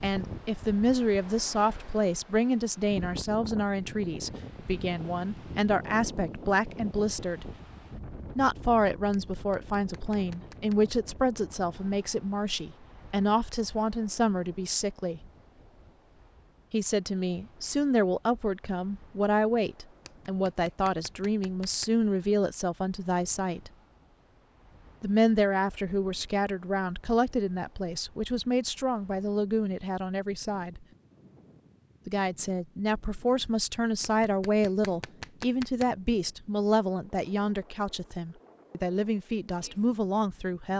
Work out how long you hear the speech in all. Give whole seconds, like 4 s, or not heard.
36 s.